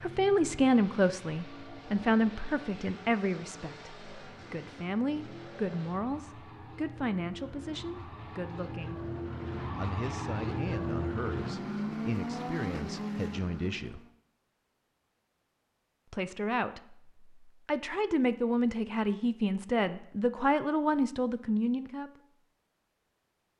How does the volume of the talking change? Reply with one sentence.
The volume of the talking goes down, then up.